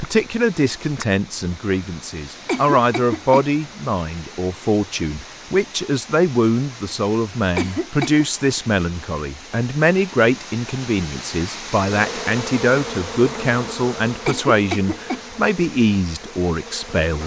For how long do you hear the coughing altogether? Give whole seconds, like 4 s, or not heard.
3 s.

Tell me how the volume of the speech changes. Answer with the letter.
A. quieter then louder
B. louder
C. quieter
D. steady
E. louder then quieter
D.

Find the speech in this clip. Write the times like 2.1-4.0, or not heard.
0.0-17.2.